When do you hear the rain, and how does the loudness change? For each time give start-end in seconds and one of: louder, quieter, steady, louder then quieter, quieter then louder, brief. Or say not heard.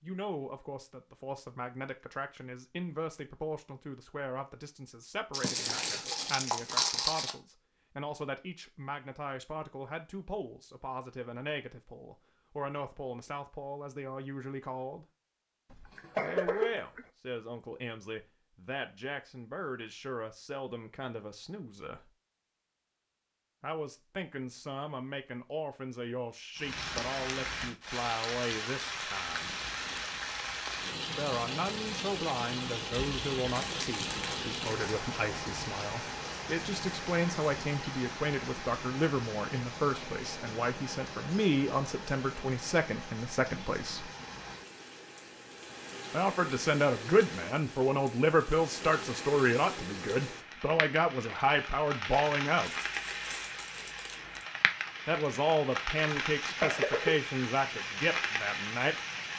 26.6-59.3 quieter then louder.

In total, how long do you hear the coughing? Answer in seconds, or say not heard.
2 s.